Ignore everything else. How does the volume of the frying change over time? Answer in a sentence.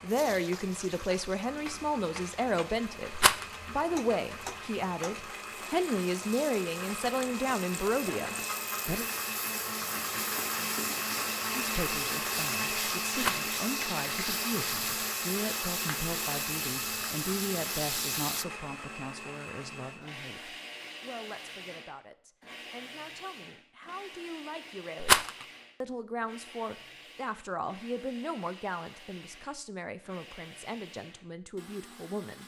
The loudness of the frying goes up.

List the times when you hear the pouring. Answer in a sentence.
You can't hear the pouring here.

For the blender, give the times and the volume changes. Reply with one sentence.
You can hear the blender from 0.0 to 32.4 s, getting louder then quieter.